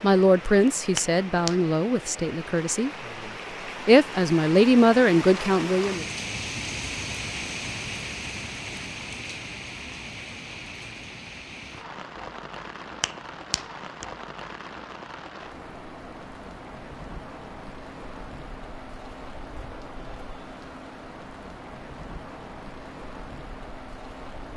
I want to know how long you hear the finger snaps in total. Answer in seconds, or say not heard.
2 s.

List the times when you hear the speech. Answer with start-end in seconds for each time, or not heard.
0.0-2.9, 3.9-6.0.